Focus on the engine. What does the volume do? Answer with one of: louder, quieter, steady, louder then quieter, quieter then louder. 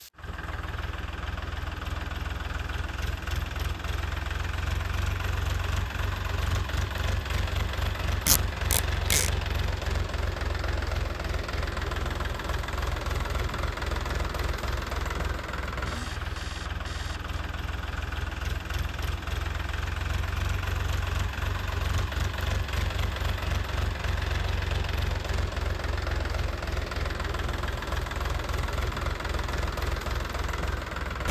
steady.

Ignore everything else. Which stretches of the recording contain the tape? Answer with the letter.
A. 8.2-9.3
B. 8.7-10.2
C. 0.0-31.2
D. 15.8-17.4
A.